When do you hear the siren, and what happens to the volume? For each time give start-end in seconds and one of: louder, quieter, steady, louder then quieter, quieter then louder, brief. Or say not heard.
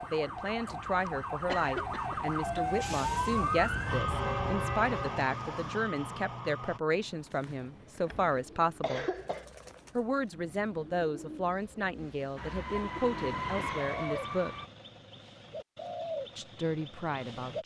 0.0-6.8 louder then quieter
12.3-14.7 brief.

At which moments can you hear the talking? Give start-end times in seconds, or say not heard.
0.0-9.1, 9.9-14.6, 16.4-17.6.